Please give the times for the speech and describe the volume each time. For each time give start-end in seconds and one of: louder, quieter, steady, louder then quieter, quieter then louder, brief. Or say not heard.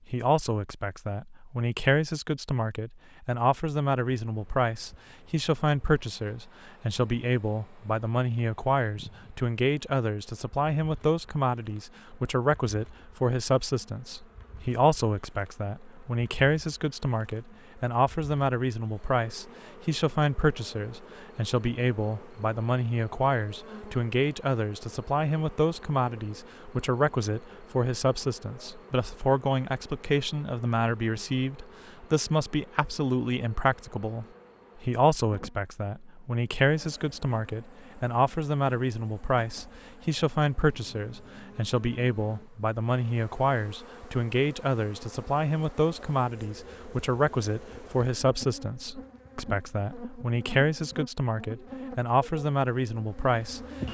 0.1-53.6 steady.